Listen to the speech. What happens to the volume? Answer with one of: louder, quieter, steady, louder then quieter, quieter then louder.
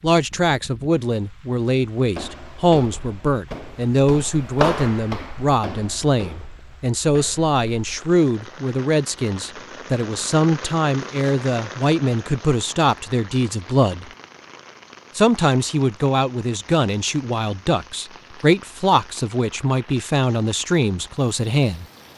steady.